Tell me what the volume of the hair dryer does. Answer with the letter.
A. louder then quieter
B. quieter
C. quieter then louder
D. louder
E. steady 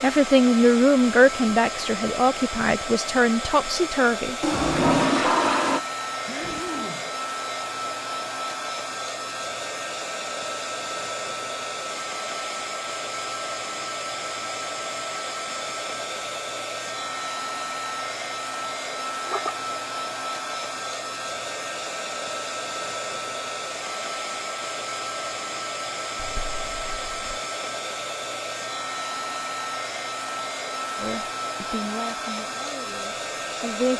E.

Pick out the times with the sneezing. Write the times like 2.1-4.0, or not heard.
6.2-7.1.